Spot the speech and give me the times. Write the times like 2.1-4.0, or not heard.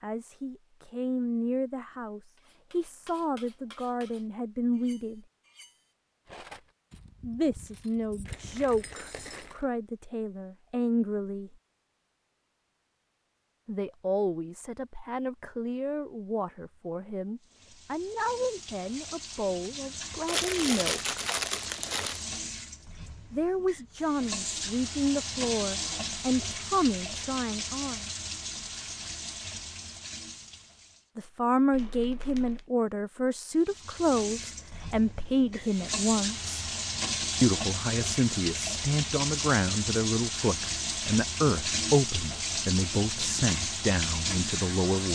0.0-5.2, 7.2-11.6, 13.7-21.2, 23.3-28.1, 31.1-36.5, 37.4-45.1.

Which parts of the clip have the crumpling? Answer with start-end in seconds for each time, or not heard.
8.2-9.7, 20.2-22.2, 31.7-32.7.